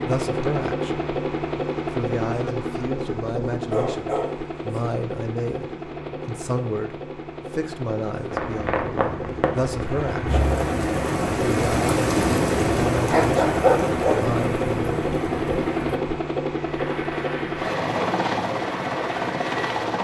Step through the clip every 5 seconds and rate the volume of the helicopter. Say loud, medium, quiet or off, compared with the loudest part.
loud, medium, loud, loud.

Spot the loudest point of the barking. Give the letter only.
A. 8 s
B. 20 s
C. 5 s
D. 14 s
D.